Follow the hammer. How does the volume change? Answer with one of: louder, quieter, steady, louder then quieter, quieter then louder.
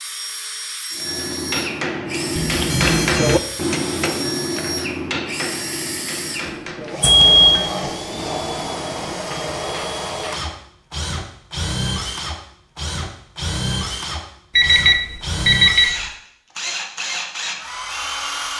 quieter.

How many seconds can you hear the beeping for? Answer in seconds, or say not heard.
3 s.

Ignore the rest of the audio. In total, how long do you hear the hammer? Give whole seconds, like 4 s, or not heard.
10 s.